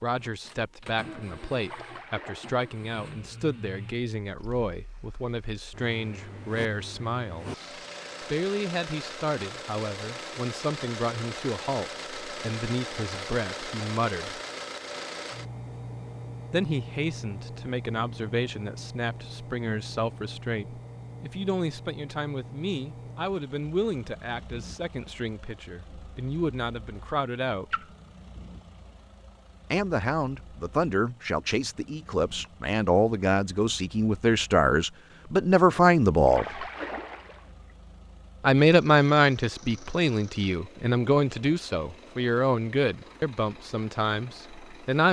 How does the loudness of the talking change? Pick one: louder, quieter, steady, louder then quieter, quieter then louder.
louder.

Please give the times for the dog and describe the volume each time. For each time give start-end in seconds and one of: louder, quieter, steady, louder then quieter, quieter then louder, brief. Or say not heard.
not heard.